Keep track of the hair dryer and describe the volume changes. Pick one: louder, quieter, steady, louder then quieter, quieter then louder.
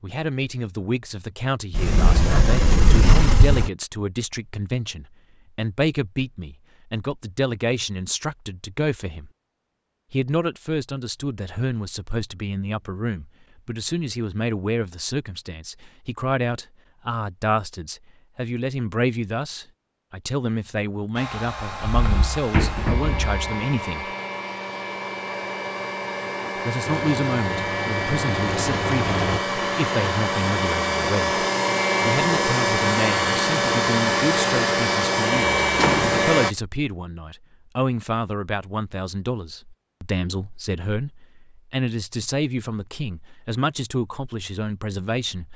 louder.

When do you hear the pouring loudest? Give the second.
29 s.